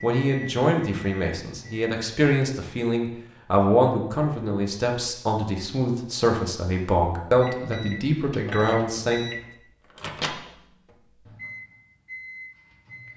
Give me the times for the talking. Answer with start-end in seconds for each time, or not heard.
0.0-9.2.